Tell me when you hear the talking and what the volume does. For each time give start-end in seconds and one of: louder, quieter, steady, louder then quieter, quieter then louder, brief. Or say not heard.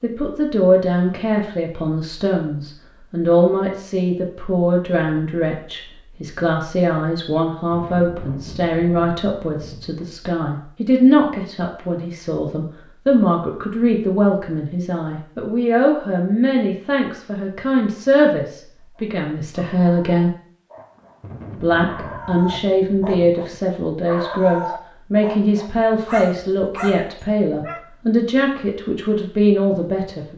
0.0-20.3 steady
21.5-30.3 steady.